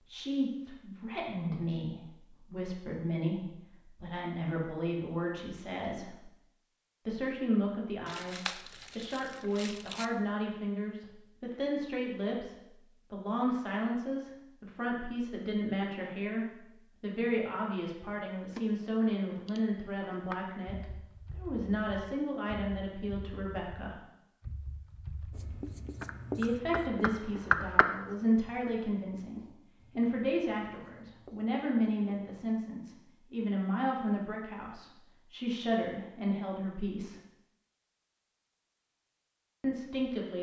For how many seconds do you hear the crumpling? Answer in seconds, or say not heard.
2 s.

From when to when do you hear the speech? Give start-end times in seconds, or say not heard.
0.1-6.2, 7.0-24.0, 26.4-37.2, 39.6-40.3.